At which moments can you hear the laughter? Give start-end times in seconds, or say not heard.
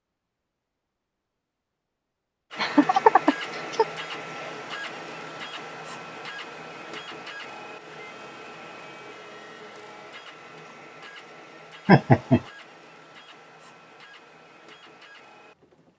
2.5-3.9, 11.8-12.4.